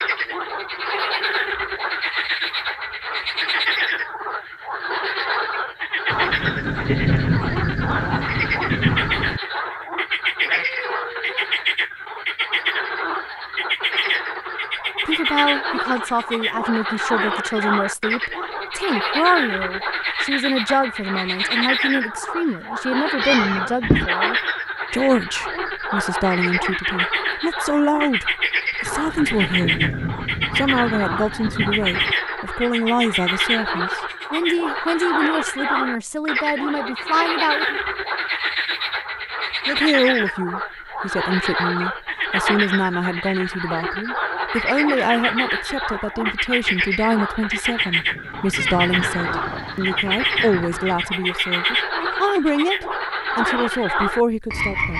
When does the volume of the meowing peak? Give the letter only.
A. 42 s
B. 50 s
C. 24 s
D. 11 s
C.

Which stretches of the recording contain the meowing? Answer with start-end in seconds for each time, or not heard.
10.4-11.5, 23.2-24.1, 48.5-50.2.